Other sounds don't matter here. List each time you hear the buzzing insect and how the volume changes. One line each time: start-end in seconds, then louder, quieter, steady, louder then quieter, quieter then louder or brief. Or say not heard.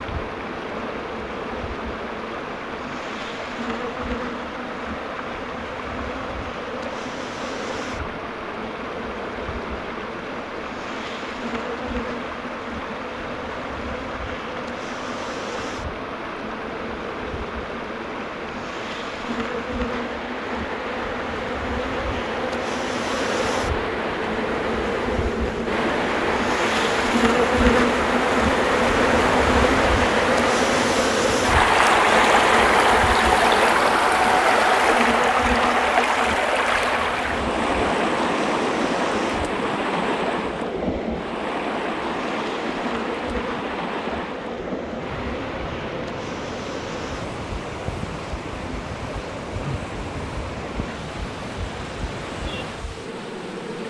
0.0-53.8 louder then quieter.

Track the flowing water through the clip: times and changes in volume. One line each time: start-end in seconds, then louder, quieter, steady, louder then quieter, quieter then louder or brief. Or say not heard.
0.0-53.8 louder then quieter.